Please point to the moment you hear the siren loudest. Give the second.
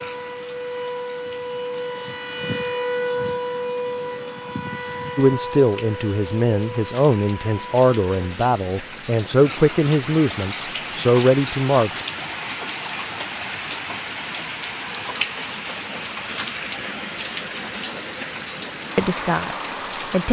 3 s.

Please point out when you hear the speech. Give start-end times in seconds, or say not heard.
5.2-12.0, 18.9-20.2.